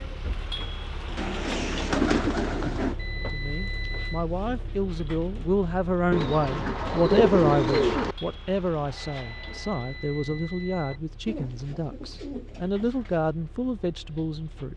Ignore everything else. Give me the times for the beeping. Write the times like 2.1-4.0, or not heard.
3.0-4.2, 8.9-11.0.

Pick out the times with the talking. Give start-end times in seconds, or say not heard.
3.1-14.7.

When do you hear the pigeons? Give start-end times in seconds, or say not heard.
1.1-3.0, 6.1-8.2, 11.2-13.2.